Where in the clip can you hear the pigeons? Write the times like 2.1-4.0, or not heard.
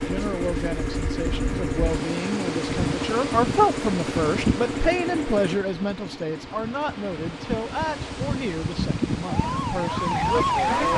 not heard.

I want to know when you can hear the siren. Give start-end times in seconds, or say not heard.
9.2-10.9.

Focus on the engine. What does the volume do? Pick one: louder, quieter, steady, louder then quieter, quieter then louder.
quieter.